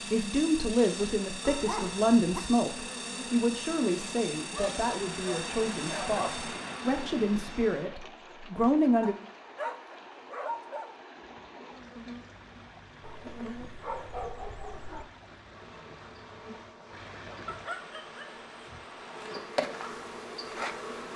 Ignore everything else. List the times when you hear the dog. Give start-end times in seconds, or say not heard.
1.4-2.4, 4.5-6.2, 9.0-10.9, 13.0-15.1, 17.4-19.4.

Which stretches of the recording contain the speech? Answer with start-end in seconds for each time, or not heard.
0.1-9.2.